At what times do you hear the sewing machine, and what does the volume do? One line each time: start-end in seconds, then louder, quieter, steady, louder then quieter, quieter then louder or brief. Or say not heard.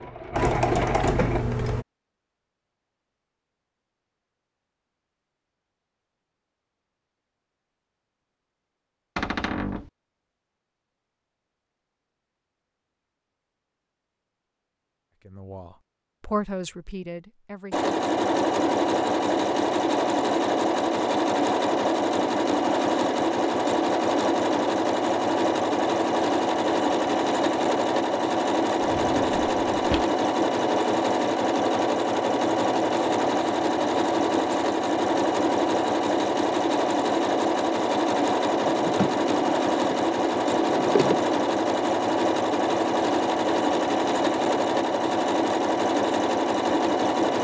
0.0-1.9 brief
17.7-47.3 steady.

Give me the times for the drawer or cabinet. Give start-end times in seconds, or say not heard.
9.2-9.9, 28.8-30.1, 38.5-41.2.